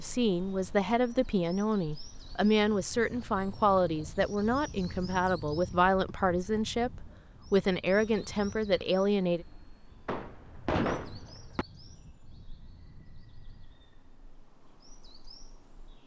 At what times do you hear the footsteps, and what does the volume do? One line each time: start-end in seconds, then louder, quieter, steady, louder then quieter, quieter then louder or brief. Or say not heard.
not heard.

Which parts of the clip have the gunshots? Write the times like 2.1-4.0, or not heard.
10.1-11.7.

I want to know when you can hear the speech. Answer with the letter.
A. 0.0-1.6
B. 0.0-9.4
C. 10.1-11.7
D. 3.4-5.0
B.